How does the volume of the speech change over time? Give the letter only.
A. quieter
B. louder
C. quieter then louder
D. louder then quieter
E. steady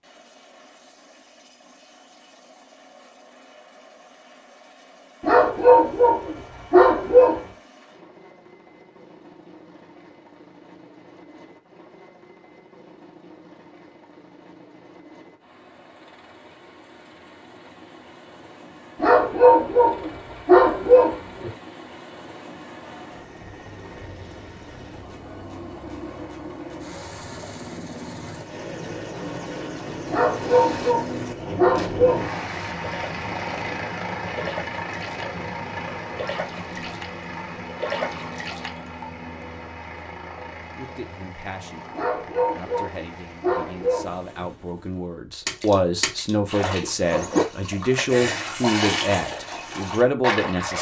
B.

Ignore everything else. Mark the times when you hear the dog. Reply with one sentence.
The dog can be heard from 5.2 to 7.5 s, from 19.0 to 21.5 s, from 30.1 to 32.3 s and from 42.0 to 44.5 s.